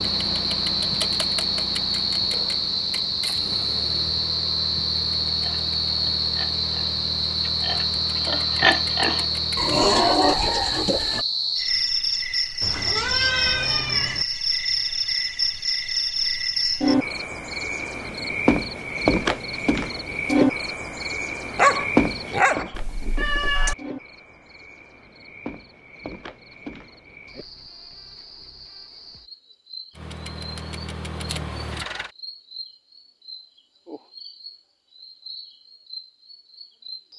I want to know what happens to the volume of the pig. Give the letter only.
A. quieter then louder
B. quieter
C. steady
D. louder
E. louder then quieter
D.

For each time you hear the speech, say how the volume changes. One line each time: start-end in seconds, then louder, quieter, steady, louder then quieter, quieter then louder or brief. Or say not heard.
not heard.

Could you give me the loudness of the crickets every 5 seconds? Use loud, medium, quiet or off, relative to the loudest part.
loud, loud, loud, loud, loud, quiet, quiet, quiet.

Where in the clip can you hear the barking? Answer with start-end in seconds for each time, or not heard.
21.6-22.7.